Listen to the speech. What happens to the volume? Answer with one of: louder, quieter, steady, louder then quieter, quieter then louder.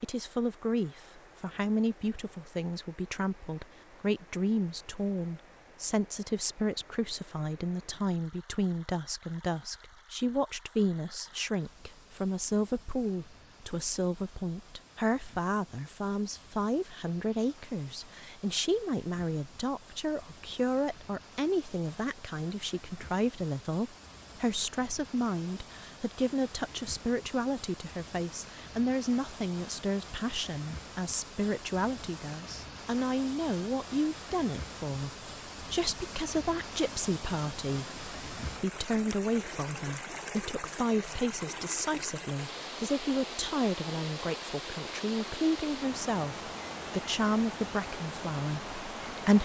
steady.